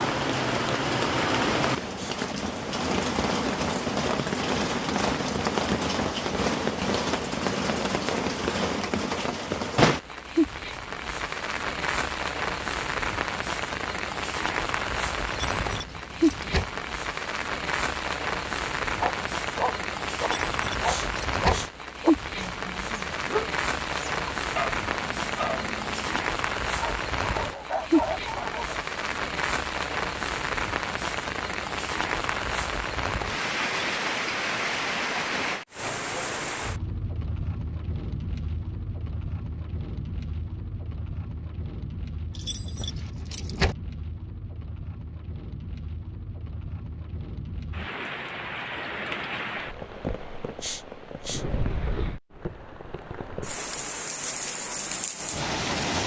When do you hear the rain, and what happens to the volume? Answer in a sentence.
You can hear the rain from 0.0 to 56.0 s, getting quieter.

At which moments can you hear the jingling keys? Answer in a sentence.
The jingling keys can be heard from 15.2 to 16.6 s, from 20.1 to 21.6 s and from 42.4 to 43.8 s.